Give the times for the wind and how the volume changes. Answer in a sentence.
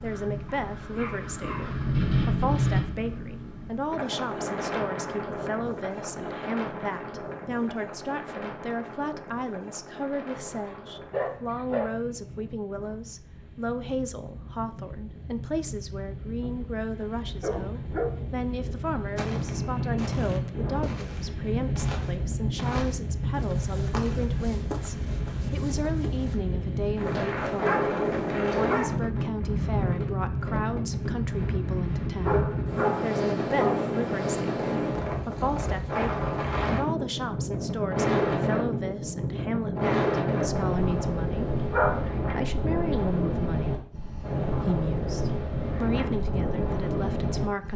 The wind can be heard from 0.0 to 47.7 s, getting quieter then louder.